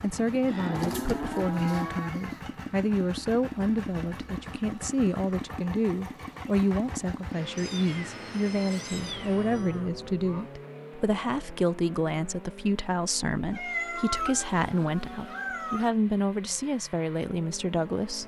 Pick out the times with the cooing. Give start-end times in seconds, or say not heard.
not heard.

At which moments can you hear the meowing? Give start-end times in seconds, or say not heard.
0.7-2.5, 7.5-9.8, 13.5-15.9.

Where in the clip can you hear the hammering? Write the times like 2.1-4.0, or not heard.
not heard.